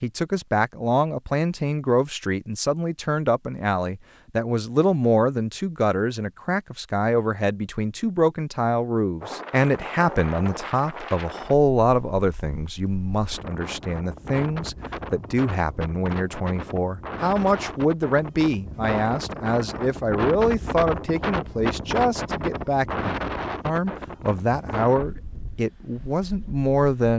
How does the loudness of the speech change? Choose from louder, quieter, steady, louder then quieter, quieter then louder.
steady.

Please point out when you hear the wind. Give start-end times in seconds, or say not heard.
9.2-27.1.